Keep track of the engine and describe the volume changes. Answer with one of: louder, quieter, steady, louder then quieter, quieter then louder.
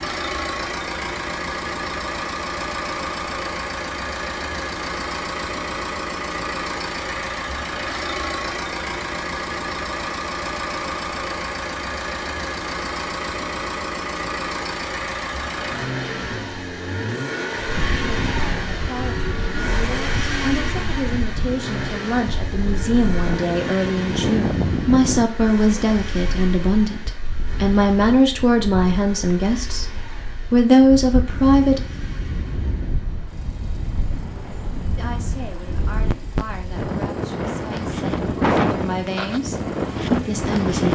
quieter.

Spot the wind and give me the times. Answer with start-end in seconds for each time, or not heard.
17.6-40.9.